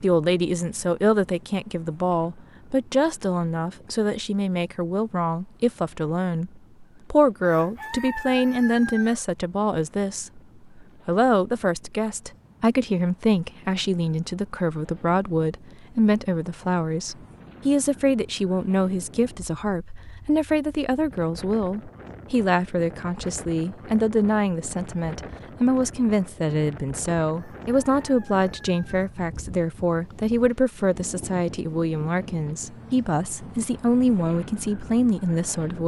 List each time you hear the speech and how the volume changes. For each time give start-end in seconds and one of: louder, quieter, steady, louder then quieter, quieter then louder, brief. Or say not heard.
0.0-35.8 steady.